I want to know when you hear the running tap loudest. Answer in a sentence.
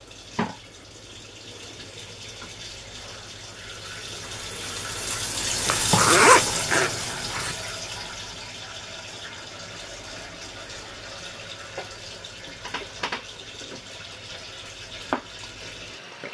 The loudest moment of the running tap is at 6 seconds.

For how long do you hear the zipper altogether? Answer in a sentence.
The zipper can be heard for 2 seconds in total.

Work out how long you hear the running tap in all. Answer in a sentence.
You can hear the running tap for 16 seconds altogether.